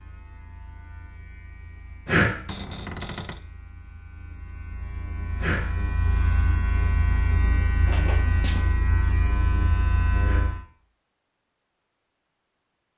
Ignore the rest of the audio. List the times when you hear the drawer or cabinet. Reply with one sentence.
You can hear the drawer or cabinet from 2.5 to 3.4 s and from 7.8 to 8.8 s.